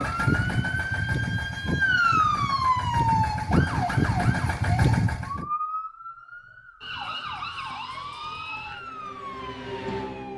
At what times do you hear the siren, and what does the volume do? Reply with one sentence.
You can hear the siren from 0.0 to 10.3 s, getting quieter.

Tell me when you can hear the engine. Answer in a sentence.
The engine can be heard from 0.0 to 5.5 s.